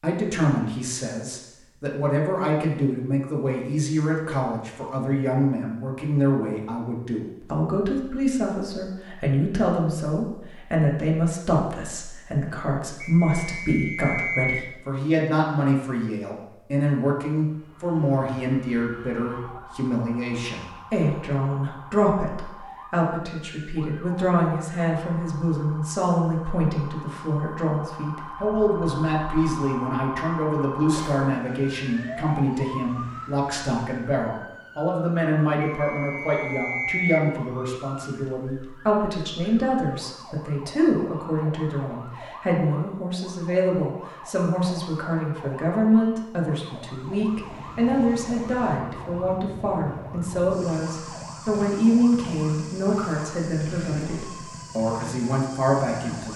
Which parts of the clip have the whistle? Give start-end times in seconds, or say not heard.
13.0-14.7, 35.6-37.2.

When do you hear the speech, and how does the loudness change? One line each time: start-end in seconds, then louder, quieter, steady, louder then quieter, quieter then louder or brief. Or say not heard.
0.0-56.3 steady.